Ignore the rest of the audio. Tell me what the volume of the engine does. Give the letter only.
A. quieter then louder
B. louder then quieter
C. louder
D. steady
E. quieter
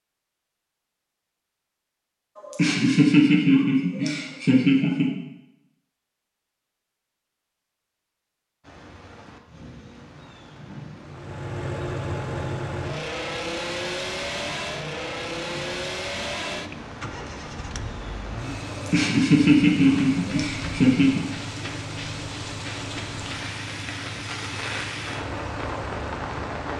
E.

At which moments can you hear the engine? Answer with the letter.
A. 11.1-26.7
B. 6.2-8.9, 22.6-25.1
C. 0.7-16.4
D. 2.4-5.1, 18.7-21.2
A.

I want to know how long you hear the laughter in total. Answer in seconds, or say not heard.
5 s.